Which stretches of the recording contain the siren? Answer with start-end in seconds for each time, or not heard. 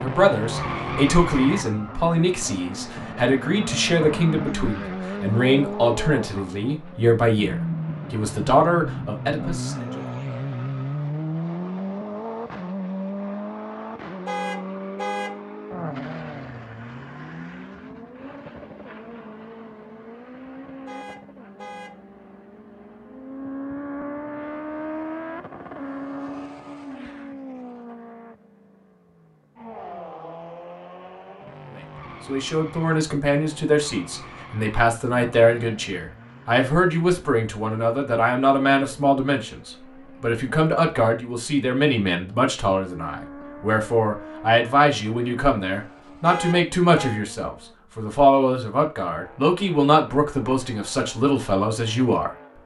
not heard.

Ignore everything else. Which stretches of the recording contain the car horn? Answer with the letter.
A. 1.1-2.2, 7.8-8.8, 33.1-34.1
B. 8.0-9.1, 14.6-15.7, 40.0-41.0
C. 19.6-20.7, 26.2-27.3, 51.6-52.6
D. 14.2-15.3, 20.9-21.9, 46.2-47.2
D.